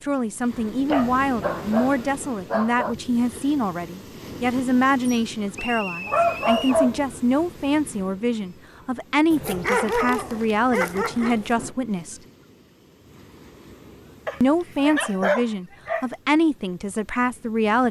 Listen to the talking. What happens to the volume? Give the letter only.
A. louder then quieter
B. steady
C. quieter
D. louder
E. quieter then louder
B.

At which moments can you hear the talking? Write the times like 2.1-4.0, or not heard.
0.0-12.2, 14.4-17.8.